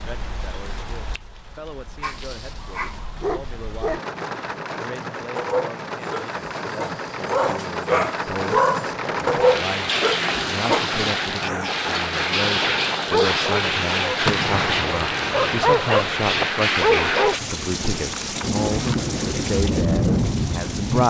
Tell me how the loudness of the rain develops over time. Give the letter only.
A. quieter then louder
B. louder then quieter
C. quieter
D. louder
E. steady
D.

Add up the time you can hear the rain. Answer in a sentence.
You can hear the rain for 21 seconds altogether.